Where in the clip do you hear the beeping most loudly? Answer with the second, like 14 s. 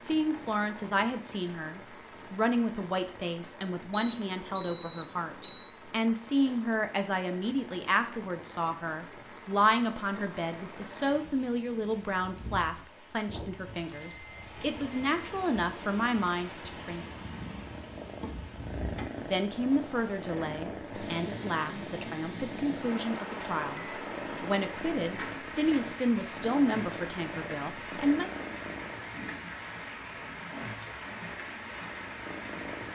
5 s.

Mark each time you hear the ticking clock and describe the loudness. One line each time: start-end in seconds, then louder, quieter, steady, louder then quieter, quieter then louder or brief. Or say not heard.
not heard.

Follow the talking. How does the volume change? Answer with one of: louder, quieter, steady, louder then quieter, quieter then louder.
steady.